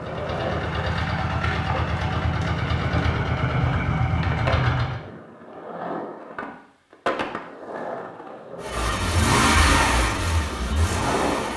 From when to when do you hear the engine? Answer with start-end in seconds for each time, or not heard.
0.0-5.0, 8.6-11.5.